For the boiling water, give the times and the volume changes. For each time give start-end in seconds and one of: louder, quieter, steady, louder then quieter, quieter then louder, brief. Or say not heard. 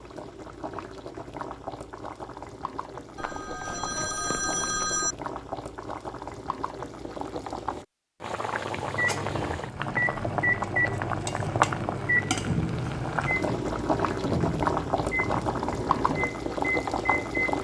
0.0-17.5 louder.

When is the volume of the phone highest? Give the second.
5 s.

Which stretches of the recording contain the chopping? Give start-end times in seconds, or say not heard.
not heard.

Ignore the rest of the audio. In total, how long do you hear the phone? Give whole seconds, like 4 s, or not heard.
2 s.